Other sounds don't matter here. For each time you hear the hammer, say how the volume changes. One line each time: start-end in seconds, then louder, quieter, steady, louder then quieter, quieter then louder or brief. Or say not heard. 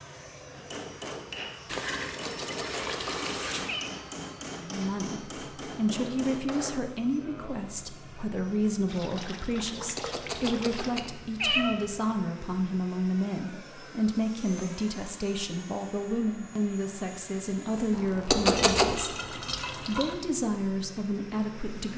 0.6-7.6 steady.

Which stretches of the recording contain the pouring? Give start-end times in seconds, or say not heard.
1.6-3.7, 8.8-11.0, 17.9-20.2.